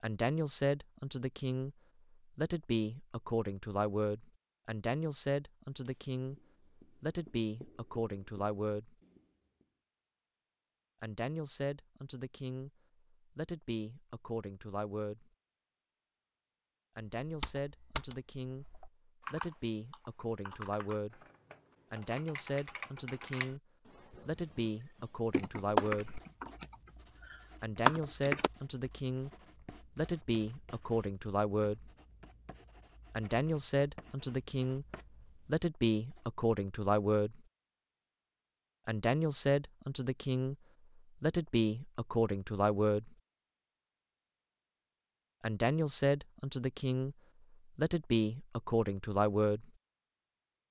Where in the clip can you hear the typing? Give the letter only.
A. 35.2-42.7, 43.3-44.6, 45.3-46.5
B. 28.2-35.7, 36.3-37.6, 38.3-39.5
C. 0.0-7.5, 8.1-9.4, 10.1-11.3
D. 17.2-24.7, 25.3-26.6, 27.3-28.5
D.